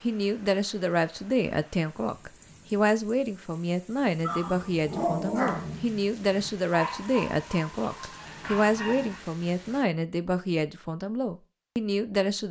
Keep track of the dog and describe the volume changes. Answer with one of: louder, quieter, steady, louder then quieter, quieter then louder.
quieter.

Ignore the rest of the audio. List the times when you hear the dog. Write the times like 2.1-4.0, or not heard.
4.0-9.2.